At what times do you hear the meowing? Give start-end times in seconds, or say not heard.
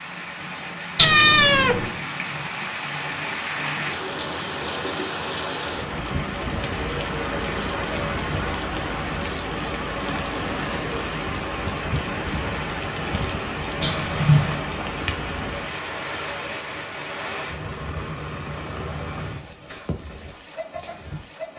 0.9-1.9, 13.8-14.7.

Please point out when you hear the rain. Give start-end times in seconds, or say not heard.
0.0-21.5.